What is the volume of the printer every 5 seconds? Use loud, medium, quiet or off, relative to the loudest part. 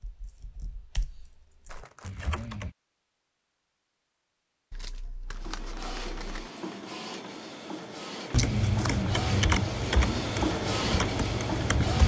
off, medium, loud.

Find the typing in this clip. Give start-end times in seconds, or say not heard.
0.0-2.8, 8.3-12.0.